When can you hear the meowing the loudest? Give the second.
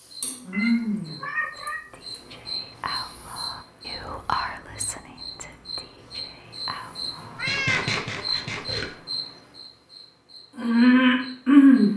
8 s.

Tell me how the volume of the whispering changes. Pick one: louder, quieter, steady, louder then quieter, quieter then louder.
louder then quieter.